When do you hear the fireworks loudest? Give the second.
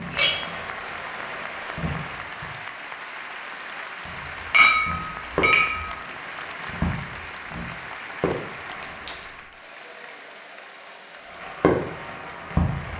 12 s.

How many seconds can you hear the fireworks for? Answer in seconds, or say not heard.
9 s.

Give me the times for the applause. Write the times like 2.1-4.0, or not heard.
0.0-12.9.